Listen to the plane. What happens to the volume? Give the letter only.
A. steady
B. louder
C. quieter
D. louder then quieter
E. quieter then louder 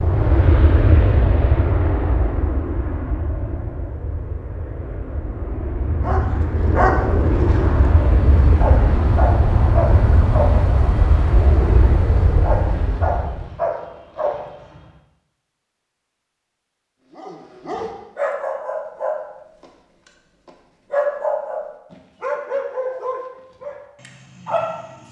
E.